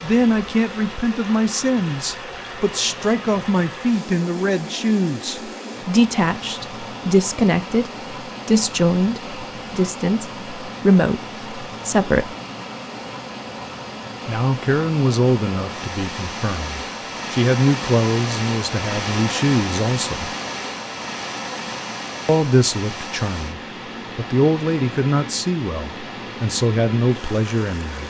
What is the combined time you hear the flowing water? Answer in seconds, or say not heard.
28 s.